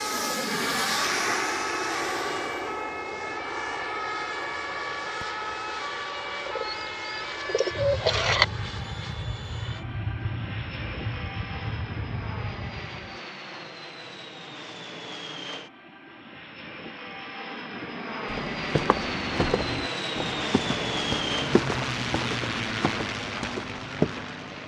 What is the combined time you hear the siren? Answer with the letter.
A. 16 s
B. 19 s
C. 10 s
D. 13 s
D.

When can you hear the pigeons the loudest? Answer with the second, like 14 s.
8 s.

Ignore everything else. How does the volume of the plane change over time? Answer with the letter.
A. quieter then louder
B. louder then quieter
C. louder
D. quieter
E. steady
A.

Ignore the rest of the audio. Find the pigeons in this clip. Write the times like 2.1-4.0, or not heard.
6.5-8.4.